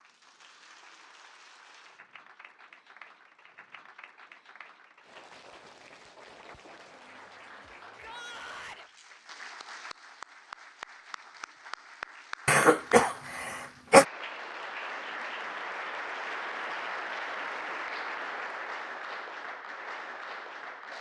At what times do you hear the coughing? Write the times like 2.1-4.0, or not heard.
12.4-14.1.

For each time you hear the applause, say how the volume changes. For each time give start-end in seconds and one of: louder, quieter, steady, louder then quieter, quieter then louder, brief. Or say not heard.
0.0-20.9 louder.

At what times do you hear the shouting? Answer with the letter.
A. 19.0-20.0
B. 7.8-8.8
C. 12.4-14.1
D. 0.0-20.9
B.